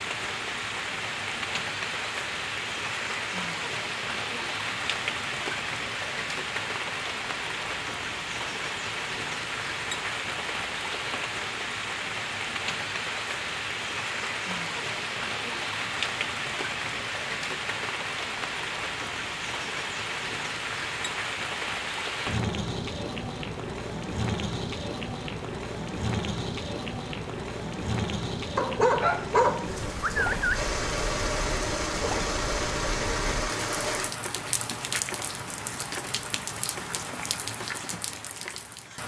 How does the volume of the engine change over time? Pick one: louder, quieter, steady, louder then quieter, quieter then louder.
louder.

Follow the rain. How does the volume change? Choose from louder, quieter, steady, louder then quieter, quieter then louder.
steady.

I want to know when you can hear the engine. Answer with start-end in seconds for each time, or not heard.
28.9-34.1.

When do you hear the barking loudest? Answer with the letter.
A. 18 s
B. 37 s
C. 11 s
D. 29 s
D.